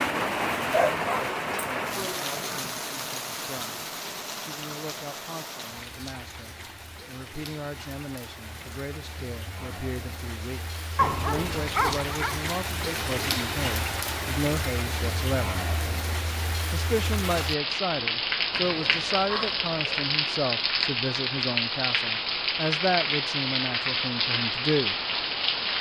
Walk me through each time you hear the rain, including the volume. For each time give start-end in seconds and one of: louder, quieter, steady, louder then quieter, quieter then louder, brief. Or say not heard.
0.0-25.7 quieter then louder.